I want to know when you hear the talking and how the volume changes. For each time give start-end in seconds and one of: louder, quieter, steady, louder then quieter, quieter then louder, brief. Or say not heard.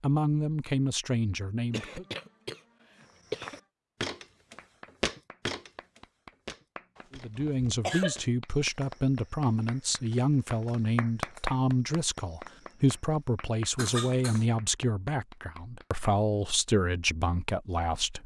0.0-2.0 brief
7.1-18.2 steady.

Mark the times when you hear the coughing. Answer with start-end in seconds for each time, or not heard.
1.7-3.6, 7.0-8.2, 13.8-14.4.